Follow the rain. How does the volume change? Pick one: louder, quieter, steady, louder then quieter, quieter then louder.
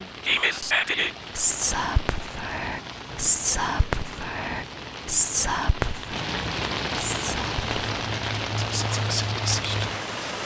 louder.